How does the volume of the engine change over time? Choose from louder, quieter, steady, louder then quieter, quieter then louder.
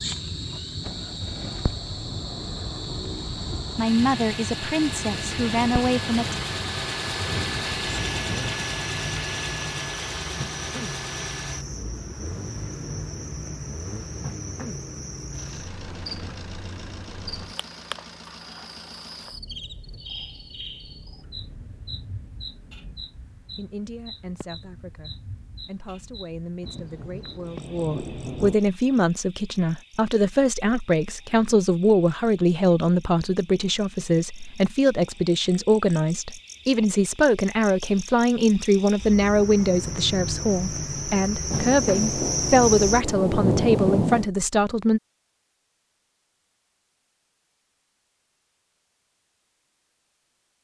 louder then quieter.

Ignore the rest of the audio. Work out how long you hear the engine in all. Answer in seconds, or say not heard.
23 s.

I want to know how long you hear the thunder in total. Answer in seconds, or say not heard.
8 s.